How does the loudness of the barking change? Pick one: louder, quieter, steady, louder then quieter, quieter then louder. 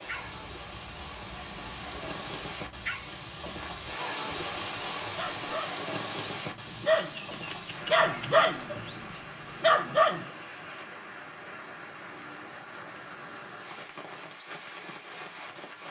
louder.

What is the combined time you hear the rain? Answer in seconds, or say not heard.
16 s.